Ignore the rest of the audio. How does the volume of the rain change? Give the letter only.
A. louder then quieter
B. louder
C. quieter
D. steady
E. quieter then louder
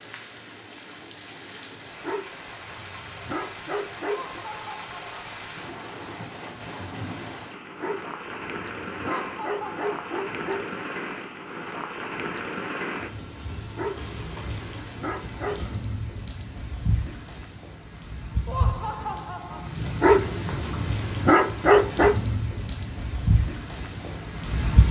B.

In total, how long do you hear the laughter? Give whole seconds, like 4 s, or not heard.
3 s.